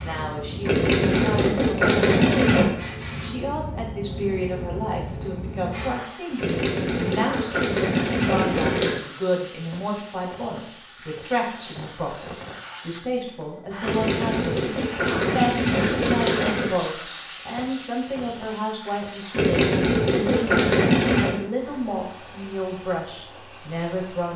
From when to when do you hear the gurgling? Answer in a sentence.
You can hear the gurgling from 0.7 to 2.6 s, from 6.3 to 9.0 s, from 13.8 to 16.7 s and from 19.3 to 21.4 s.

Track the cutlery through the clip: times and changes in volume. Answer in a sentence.
The cutlery can't be heard in this clip.